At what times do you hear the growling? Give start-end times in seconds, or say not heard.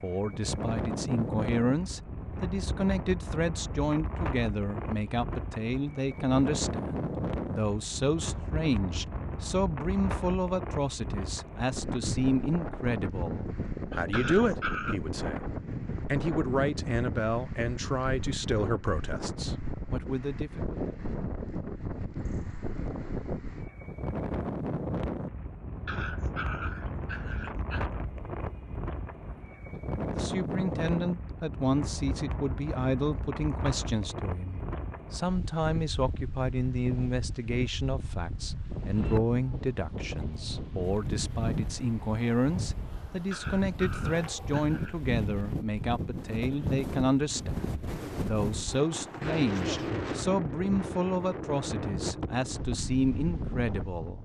14.1-14.9, 25.9-27.9, 43.3-45.1.